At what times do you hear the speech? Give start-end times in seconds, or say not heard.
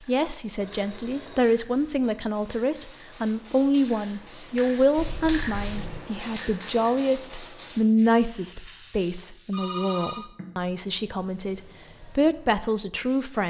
0.1-13.4.